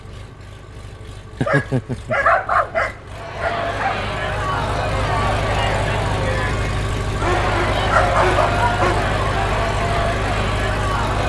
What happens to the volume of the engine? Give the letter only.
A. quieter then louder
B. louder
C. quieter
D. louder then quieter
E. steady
B.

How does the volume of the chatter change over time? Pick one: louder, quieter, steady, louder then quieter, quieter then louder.
steady.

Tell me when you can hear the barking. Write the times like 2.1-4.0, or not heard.
1.4-4.0, 7.2-9.1.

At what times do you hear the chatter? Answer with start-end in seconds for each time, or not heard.
3.1-11.2.